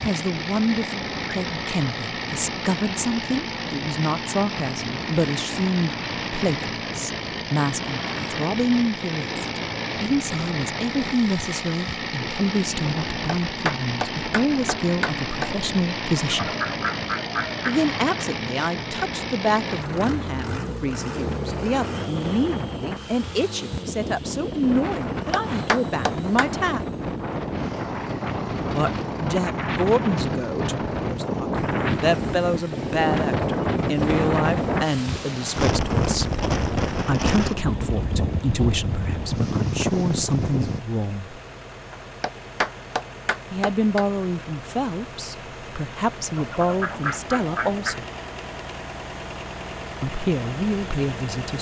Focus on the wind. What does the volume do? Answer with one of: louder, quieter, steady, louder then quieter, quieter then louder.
louder.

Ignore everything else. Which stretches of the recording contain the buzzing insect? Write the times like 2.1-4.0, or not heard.
not heard.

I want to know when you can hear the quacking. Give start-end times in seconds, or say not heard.
16.1-17.6, 46.4-48.0.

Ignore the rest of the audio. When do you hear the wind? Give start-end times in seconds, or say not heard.
0.0-40.8.